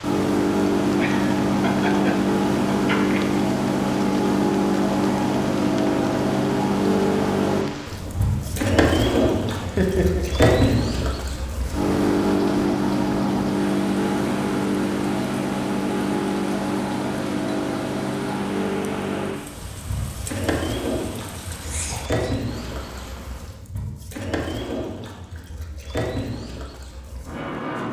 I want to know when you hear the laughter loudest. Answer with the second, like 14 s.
10 s.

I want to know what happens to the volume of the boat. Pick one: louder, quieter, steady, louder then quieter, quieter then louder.
quieter.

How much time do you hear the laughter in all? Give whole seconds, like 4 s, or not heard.
4 s.